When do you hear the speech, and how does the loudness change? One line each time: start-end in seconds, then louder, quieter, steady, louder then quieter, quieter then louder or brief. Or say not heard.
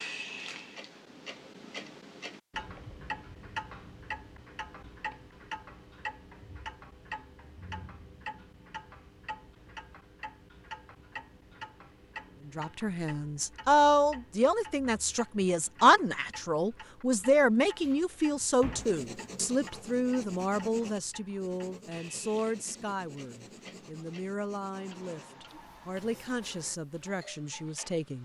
12.4-28.1 quieter.